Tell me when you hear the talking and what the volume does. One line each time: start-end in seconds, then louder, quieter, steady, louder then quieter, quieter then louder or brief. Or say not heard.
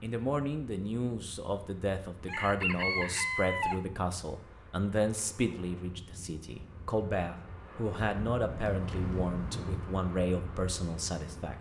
0.0-11.5 steady.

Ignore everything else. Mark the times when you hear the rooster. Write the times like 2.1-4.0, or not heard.
2.2-3.8.